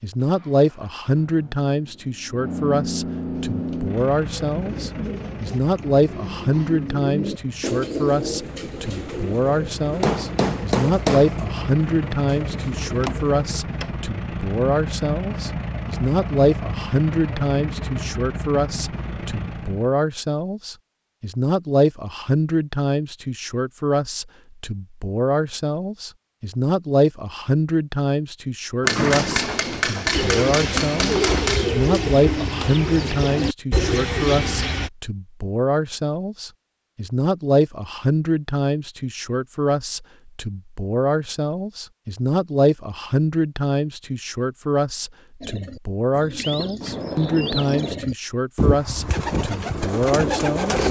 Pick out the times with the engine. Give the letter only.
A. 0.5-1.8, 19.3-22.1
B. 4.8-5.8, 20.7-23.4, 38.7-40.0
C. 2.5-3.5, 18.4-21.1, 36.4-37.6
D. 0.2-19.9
D.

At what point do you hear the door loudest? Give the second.
29 s.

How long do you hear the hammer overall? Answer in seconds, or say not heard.
4 s.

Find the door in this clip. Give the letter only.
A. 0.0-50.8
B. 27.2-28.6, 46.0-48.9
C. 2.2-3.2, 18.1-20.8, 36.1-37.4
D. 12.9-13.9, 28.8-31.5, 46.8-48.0
D.